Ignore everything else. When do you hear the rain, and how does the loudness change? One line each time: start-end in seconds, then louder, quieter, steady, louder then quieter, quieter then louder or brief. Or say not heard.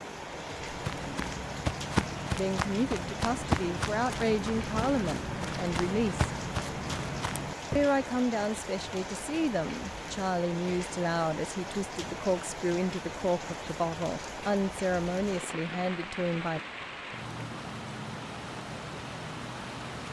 0.0-20.0 steady.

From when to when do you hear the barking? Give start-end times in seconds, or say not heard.
not heard.